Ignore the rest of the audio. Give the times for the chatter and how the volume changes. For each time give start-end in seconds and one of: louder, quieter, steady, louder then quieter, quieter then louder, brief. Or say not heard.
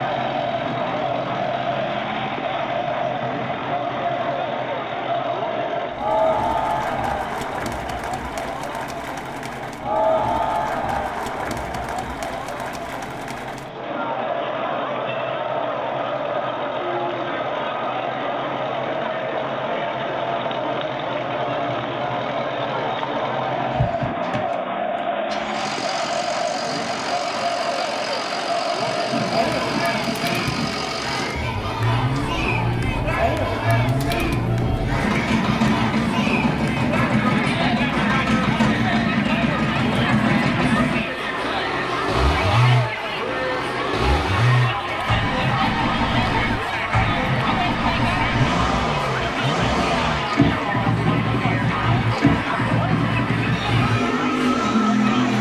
0.0-55.3 steady.